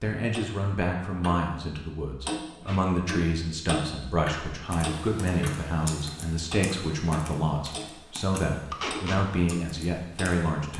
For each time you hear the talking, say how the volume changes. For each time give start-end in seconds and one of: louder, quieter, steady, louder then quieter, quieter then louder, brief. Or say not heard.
0.0-10.7 steady.